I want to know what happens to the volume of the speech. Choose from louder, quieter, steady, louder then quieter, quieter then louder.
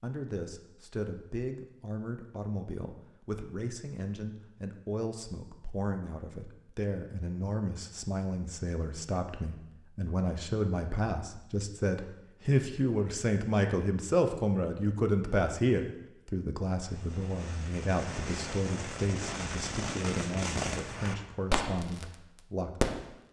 louder then quieter.